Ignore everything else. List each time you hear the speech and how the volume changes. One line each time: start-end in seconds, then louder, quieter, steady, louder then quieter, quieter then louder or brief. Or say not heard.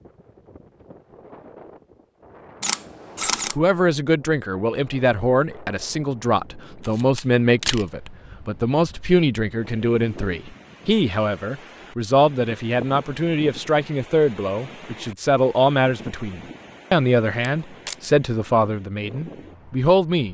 3.5-20.3 steady.